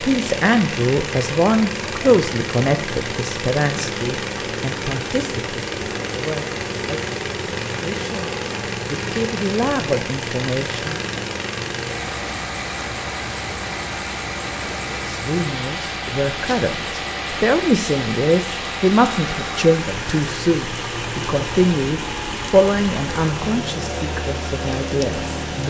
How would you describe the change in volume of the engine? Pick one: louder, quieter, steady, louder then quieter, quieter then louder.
steady.